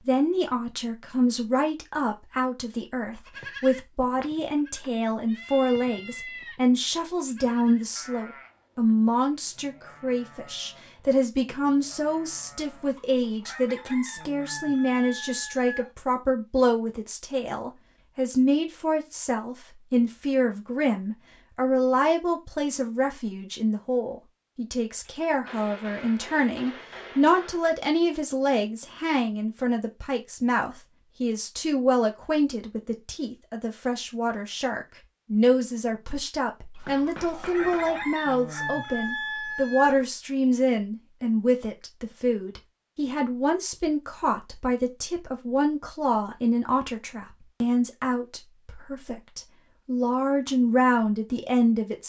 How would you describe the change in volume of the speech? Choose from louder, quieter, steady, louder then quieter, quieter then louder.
steady.